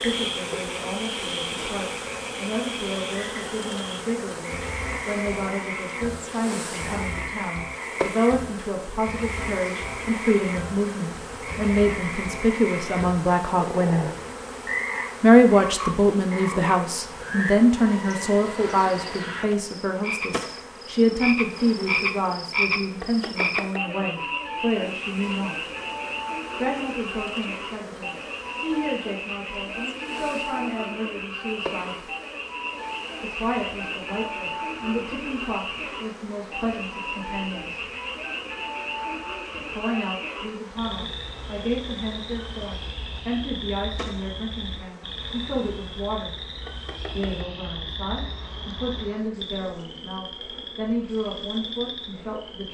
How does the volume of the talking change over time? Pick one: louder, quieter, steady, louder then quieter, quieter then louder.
louder then quieter.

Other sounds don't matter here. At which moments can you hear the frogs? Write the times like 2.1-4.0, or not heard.
0.0-52.6.